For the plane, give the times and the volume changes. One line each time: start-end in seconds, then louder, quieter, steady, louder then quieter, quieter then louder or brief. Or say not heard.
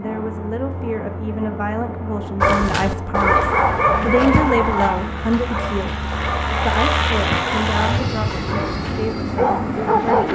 0.0-10.3 louder.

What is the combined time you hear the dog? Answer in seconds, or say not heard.
8 s.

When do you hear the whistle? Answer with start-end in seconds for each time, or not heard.
not heard.